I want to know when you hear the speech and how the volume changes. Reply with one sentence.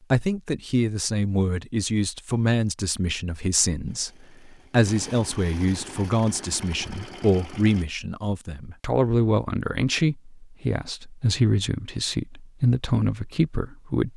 You can hear the speech from 0.1 to 14.1 s, at a steady volume.